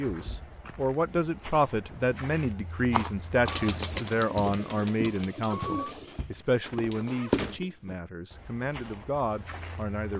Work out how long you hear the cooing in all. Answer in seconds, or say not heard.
3 s.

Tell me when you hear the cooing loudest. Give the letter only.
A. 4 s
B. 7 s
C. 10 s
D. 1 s
A.